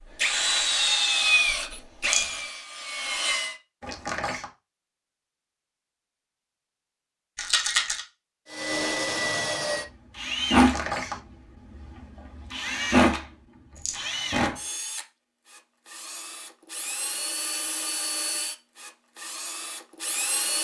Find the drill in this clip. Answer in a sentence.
The drill can be heard from 0.1 to 3.5 s and from 8.5 to 20.5 s.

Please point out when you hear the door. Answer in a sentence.
You can hear the door from 3.8 to 4.5 s and from 10.6 to 11.2 s.